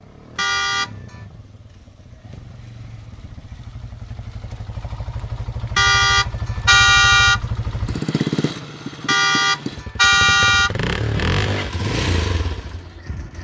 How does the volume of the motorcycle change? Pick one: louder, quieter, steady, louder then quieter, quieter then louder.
louder.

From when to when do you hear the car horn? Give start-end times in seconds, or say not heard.
0.3-1.1, 5.8-7.4, 9.1-10.7.